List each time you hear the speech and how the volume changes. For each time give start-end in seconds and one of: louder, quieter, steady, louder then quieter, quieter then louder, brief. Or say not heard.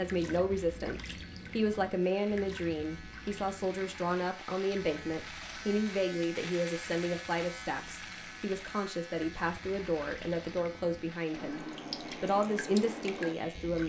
0.0-13.8 steady.